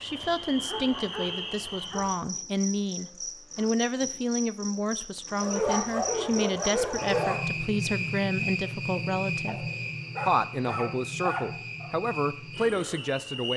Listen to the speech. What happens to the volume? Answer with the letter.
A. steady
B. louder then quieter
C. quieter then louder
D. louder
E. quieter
A.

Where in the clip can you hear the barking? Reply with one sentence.
The barking can be heard from 0.2 to 2.1 s, from 5.4 to 7.4 s and from 9.4 to 11.9 s.